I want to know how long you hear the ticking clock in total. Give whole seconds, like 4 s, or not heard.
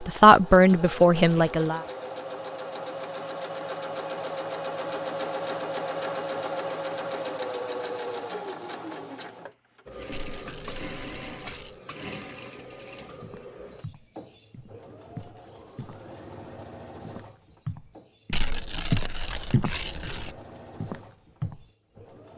not heard.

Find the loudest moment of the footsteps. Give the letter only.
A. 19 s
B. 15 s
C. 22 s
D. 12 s
A.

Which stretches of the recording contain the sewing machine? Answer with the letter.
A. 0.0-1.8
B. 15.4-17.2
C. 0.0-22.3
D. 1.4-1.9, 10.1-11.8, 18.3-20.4
C.